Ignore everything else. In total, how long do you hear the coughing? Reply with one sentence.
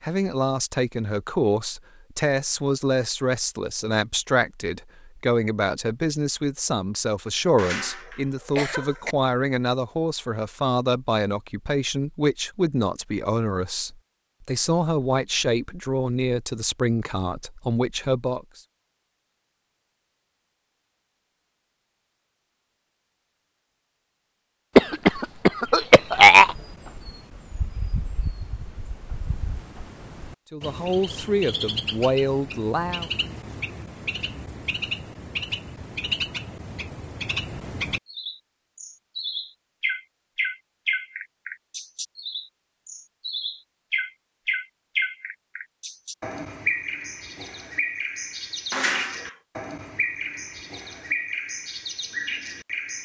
The coughing can be heard for 4 seconds in total.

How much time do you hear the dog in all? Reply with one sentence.
You can't hear the dog here.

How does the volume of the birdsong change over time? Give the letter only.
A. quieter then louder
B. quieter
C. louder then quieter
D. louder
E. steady
D.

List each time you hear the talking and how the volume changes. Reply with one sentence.
The talking can be heard from 0.0 to 18.6 s, at a steady volume; and briefly from 30.5 to 33.1 s.